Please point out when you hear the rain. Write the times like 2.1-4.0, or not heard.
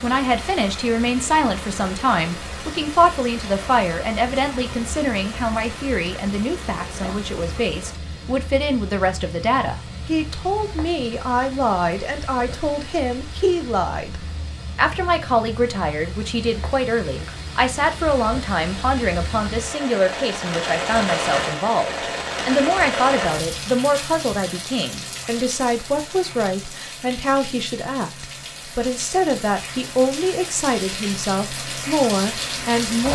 0.0-33.0.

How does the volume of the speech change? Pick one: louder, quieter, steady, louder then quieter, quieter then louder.
steady.